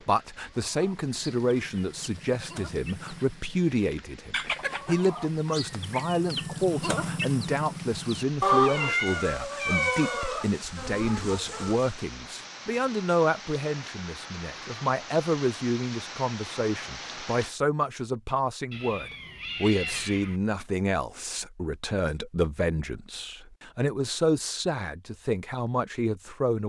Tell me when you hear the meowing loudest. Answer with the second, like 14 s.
9 s.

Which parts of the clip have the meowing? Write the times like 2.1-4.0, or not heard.
8.6-10.4, 18.7-20.4.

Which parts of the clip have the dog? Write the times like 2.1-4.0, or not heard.
not heard.